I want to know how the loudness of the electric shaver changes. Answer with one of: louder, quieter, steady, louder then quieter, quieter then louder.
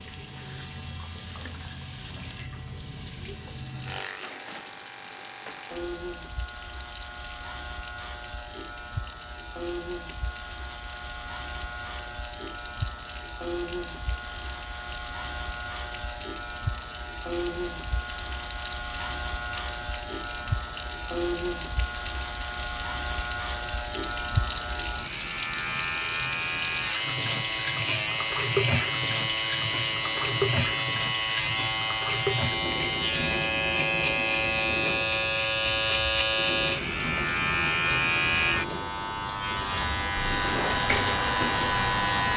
louder.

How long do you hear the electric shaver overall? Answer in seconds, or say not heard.
42 s.